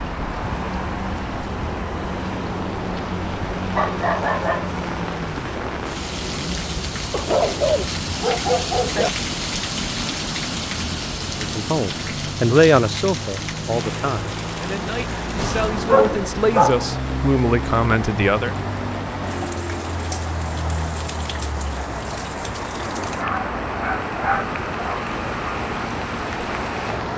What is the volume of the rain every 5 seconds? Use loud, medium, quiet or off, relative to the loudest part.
medium, loud, loud, medium, medium, medium.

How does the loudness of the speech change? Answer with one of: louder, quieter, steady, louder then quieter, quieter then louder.
quieter then louder.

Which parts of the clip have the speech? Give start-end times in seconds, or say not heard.
11.4-18.6.